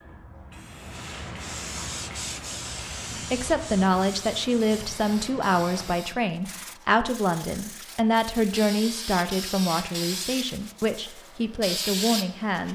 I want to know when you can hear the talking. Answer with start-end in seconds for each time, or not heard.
3.3-12.7.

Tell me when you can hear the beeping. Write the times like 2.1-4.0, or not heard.
not heard.